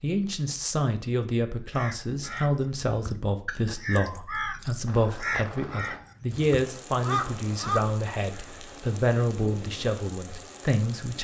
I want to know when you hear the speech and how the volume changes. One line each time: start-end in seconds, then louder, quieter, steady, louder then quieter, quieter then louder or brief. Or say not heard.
0.0-11.1 steady.